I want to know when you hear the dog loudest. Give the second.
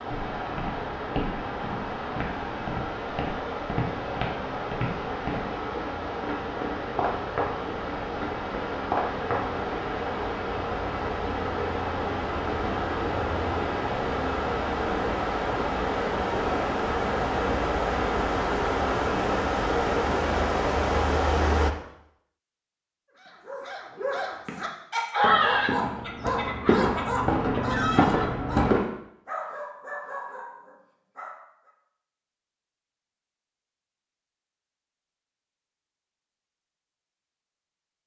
25 s.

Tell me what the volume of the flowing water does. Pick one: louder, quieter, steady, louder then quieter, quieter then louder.
louder.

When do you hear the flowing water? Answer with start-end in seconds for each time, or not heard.
0.0-21.8.